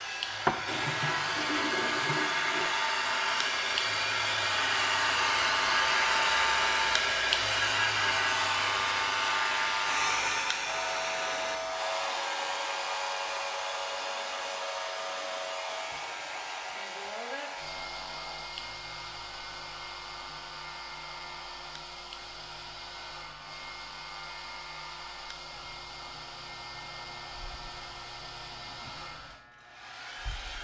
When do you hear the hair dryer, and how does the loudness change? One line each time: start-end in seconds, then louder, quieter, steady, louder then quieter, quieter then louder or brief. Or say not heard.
0.0-30.5 quieter.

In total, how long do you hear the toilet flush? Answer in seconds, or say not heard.
2 s.